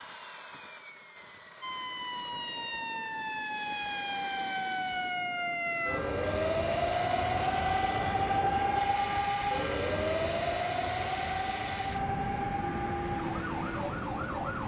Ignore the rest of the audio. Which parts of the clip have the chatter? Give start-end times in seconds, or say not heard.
not heard.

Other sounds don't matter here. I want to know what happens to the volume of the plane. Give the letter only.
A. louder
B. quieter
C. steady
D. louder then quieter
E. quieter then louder
A.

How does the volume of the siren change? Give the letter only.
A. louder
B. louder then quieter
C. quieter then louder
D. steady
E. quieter
B.